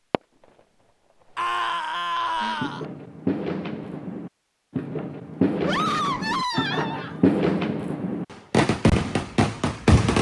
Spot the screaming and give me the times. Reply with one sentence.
The screaming can be heard from 1.4 to 2.9 s and from 5.7 to 7.0 s.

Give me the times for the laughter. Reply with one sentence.
The laughter can be heard from 2.1 to 2.8 s and from 6.5 to 7.2 s.